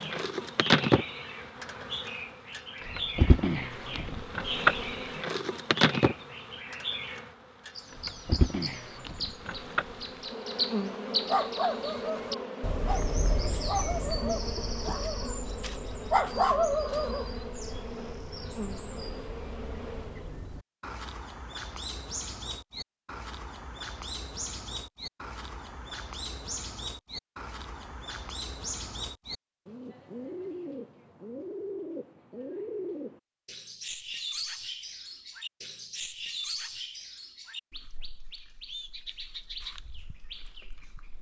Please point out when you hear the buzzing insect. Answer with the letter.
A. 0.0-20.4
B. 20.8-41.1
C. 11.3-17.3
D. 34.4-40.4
A.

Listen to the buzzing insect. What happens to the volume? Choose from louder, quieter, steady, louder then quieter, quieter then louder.
quieter.